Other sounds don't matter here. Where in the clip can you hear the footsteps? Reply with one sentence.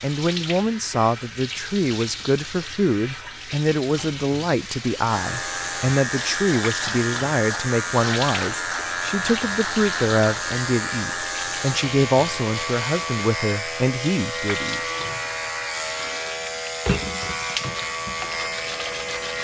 You can't hear the footsteps here.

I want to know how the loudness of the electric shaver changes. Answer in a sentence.
The volume of the electric shaver stays about the same.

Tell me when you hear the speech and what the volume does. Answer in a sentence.
The speech can be heard from 0.0 to 14.8 s, at a steady volume.